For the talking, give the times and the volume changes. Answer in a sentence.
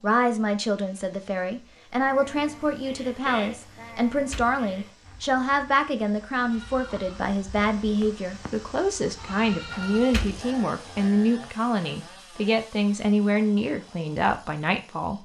You can hear the talking from 0.0 to 15.1 s, at a steady volume.